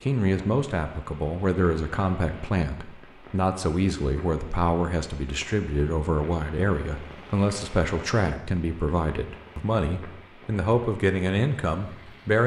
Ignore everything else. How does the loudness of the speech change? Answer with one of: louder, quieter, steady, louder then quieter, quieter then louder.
steady.